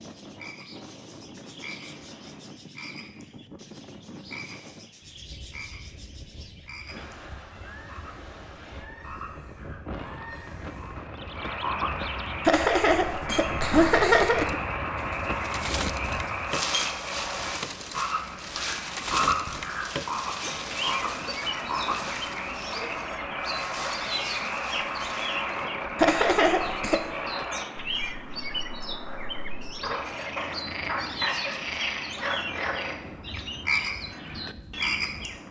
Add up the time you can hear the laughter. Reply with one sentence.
You can hear the laughter for 3 seconds altogether.